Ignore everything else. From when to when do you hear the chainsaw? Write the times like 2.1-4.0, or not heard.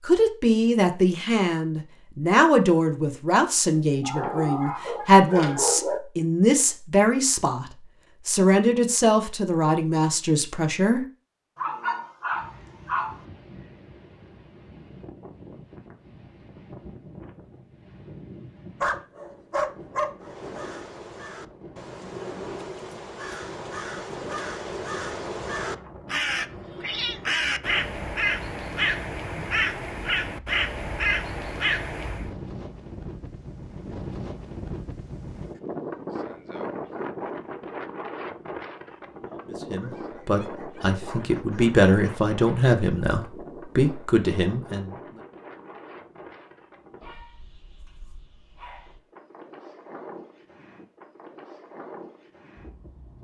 not heard.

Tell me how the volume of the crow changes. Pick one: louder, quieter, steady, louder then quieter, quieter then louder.
louder.